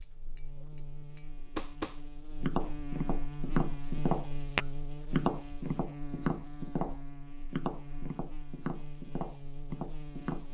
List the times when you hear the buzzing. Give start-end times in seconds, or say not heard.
0.0-10.4.